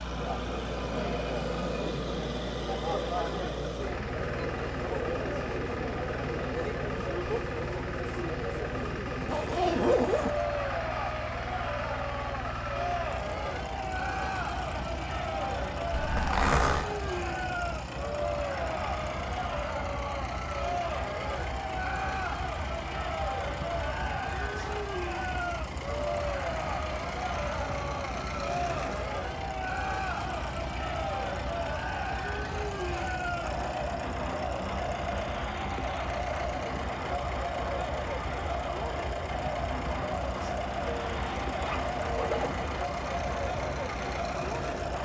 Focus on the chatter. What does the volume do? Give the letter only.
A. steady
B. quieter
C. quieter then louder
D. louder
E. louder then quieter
A.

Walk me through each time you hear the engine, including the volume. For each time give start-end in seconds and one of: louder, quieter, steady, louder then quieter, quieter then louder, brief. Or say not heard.
0.0-44.9 steady.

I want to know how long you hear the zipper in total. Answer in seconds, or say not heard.
4 s.